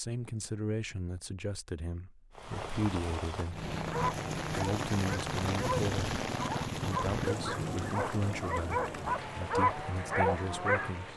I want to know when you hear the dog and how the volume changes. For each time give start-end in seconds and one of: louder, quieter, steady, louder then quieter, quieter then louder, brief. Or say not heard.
3.9-10.9 louder.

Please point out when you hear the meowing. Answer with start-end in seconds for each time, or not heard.
not heard.